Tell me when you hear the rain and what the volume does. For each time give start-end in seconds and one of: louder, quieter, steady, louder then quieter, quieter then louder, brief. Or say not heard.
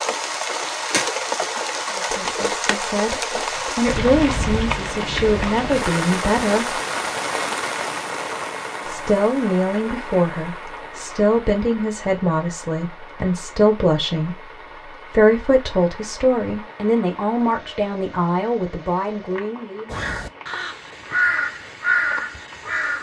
0.0-22.9 quieter.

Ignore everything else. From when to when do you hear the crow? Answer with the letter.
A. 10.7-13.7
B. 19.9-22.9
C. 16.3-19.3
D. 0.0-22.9
B.